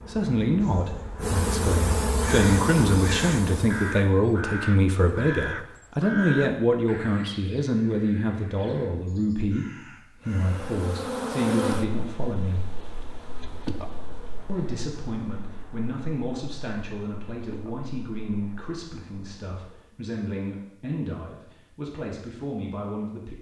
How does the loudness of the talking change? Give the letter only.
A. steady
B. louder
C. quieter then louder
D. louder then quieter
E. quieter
E.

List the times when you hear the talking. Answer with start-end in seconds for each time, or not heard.
0.1-12.7, 14.4-23.3.